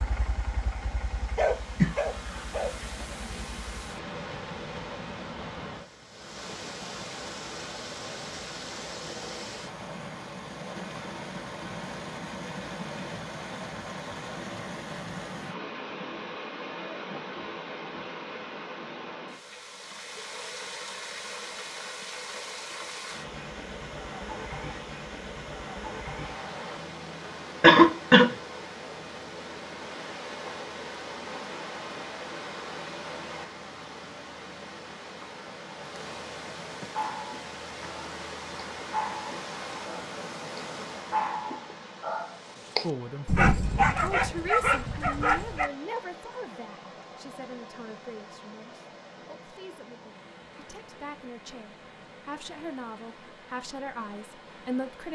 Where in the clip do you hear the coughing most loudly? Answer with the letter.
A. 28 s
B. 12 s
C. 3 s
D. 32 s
A.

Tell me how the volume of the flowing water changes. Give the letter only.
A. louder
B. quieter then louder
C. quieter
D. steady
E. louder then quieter
C.